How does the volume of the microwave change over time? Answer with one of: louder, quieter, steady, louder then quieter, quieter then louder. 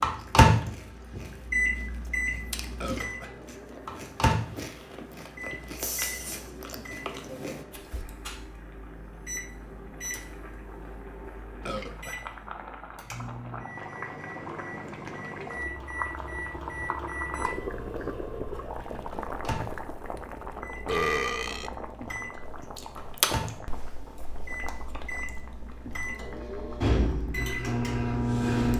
quieter then louder.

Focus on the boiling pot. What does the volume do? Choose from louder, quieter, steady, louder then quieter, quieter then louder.
louder then quieter.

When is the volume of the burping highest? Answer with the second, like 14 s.
21 s.